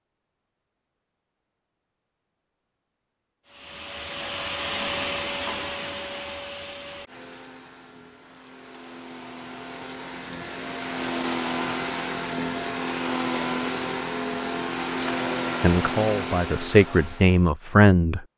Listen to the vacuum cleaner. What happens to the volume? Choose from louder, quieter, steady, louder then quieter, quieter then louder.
quieter then louder.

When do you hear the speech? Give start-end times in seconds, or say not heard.
15.6-18.2.